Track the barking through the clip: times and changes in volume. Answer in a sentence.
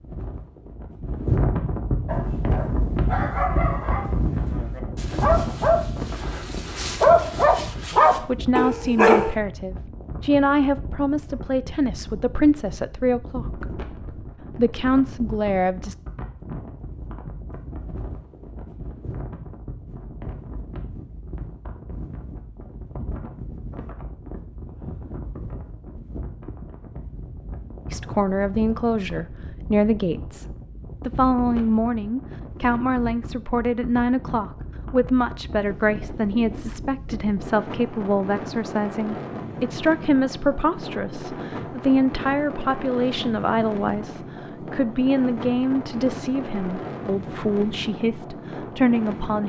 The barking can be heard from 2.0 to 9.3 s, getting quieter then louder.